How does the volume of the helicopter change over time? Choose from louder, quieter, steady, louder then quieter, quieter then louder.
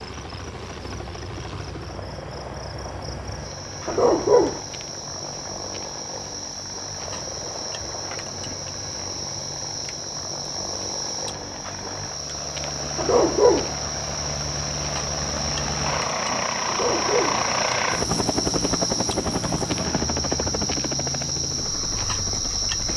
louder.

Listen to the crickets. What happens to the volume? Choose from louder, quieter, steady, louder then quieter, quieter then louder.
louder.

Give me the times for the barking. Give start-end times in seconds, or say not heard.
3.9-4.6, 12.9-13.7, 16.6-17.4.